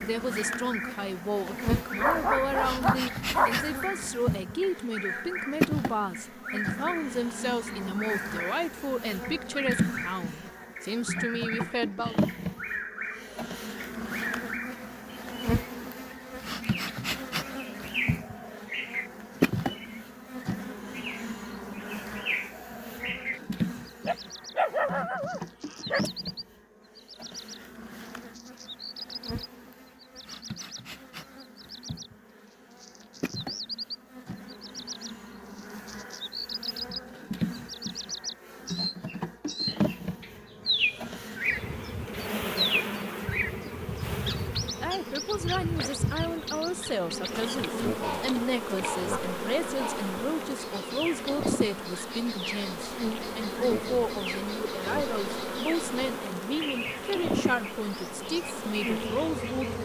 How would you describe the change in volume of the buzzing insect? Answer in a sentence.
The loudness of the buzzing insect goes down, then up.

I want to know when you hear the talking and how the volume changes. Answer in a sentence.
The talking can be heard from 0.0 to 12.2 s, at a steady volume; and from 44.6 to 59.8 s, at a steady volume.